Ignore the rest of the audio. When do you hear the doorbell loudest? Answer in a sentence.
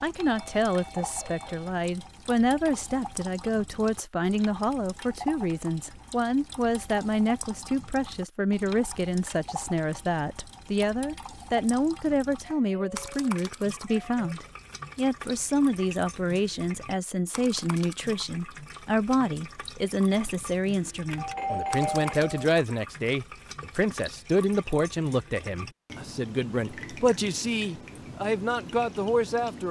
The loudest moment of the doorbell is at 22 seconds.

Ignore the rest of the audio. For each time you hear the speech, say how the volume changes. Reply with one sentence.
The speech can be heard from 0.0 to 29.6 s, at a steady volume.